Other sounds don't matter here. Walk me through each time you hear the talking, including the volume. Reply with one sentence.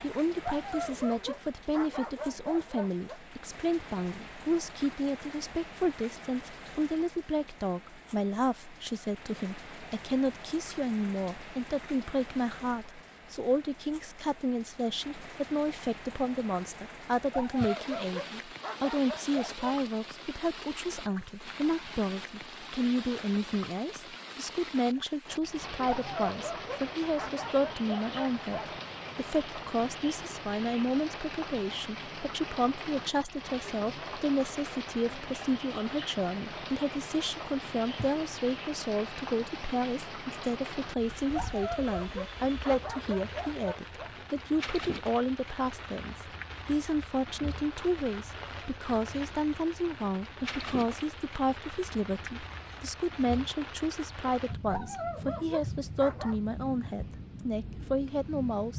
The talking can be heard from 0.0 to 58.7 s, at a steady volume.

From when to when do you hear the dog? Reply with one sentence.
The dog can be heard from 0.4 to 3.2 s, from 17.3 to 19.7 s, from 25.9 to 28.7 s, from 41.3 to 44.1 s and from 54.6 to 56.4 s.